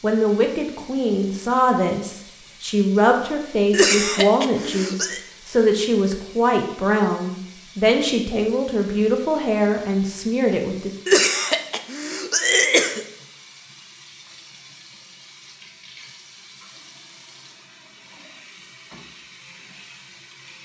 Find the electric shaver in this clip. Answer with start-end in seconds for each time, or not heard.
not heard.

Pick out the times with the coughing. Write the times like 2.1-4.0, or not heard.
3.7-5.2, 11.1-13.1.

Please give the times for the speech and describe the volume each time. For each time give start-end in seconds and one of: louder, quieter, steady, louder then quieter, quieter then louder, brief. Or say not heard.
0.0-10.9 steady.